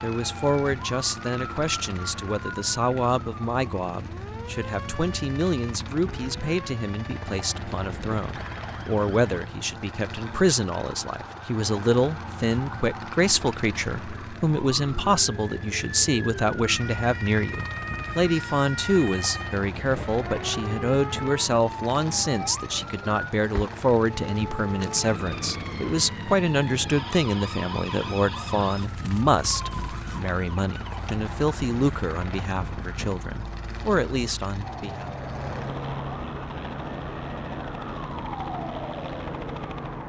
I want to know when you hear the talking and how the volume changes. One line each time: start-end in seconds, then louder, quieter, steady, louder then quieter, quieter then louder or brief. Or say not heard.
0.0-35.1 steady.